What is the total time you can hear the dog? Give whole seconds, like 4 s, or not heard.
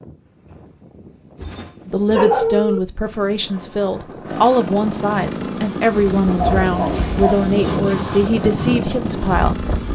3 s.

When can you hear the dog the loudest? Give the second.
2 s.